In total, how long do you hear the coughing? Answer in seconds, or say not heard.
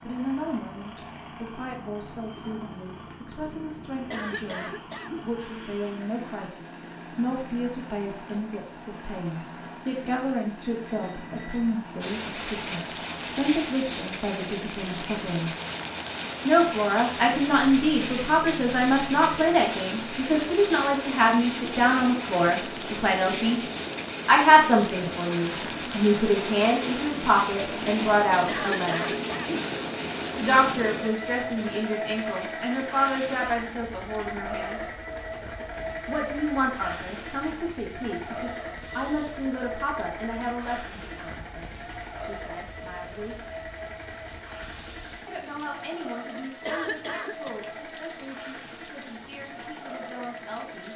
3 s.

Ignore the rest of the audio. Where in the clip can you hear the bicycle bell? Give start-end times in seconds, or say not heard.
10.8-11.8, 18.9-19.7, 38.3-39.1.